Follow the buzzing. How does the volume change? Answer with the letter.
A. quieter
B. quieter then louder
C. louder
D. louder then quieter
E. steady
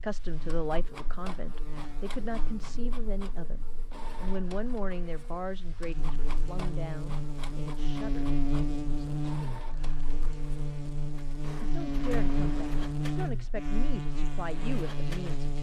C.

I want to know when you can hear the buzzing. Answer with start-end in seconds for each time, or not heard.
0.0-15.5.